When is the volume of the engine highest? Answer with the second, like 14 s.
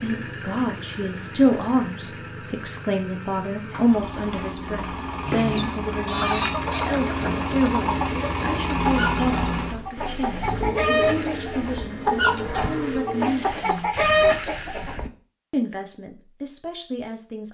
9 s.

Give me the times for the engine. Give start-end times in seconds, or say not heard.
0.0-14.7.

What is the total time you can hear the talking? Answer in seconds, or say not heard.
16 s.